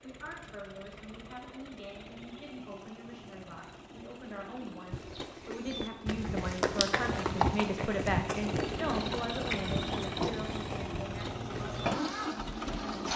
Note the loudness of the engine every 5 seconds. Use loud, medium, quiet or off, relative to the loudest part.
quiet, medium, loud.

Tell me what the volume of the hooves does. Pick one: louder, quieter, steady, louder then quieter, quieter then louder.
louder then quieter.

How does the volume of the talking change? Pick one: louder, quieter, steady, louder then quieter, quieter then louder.
louder then quieter.